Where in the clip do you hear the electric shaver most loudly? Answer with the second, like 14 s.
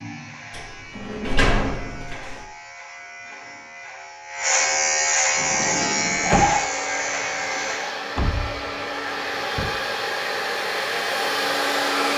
5 s.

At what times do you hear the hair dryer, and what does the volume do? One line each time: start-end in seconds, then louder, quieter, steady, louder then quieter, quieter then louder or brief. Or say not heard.
5.3-12.1 louder.